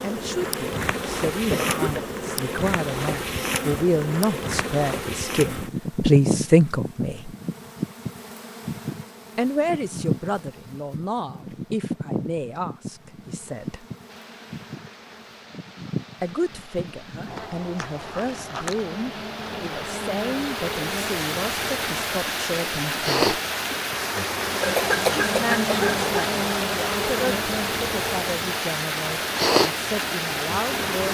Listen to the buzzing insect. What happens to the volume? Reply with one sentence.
The volume of the buzzing insect goes down, then up.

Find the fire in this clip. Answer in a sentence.
The fire can't be heard in this clip.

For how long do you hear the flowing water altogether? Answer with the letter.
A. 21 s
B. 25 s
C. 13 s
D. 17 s
D.